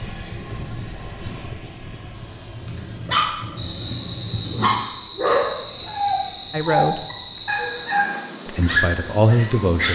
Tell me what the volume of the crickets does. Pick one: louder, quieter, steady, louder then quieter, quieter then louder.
steady.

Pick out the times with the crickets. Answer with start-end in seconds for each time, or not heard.
3.5-9.9.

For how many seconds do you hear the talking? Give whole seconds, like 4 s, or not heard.
2 s.